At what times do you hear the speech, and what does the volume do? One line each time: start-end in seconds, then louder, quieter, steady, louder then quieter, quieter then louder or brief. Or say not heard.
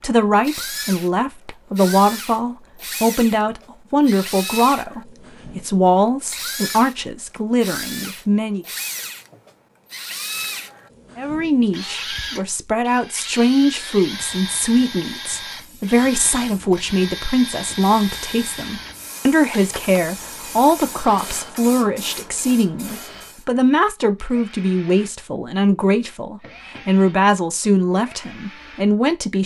0.0-8.7 steady
11.2-29.4 steady.